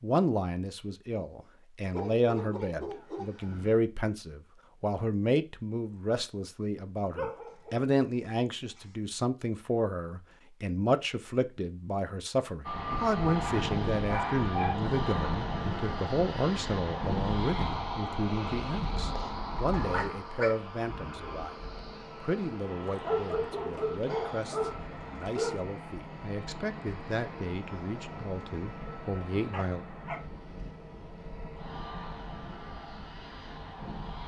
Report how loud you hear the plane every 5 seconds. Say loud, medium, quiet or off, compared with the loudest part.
off, off, loud, loud, medium, medium, medium.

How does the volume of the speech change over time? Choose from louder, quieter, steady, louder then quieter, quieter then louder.
quieter.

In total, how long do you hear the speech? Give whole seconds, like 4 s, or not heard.
29 s.